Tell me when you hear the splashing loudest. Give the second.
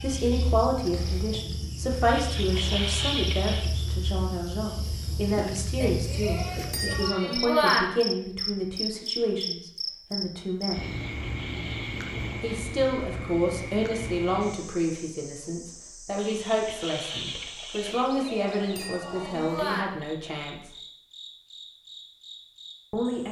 3 s.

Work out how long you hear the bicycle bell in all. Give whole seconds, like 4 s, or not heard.
4 s.